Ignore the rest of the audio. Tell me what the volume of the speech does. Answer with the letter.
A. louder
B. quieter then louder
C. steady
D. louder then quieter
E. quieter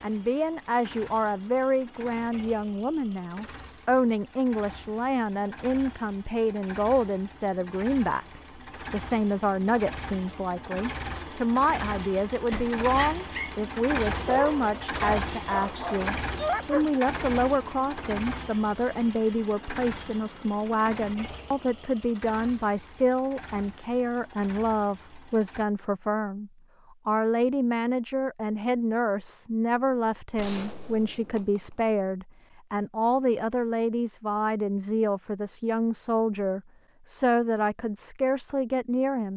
C.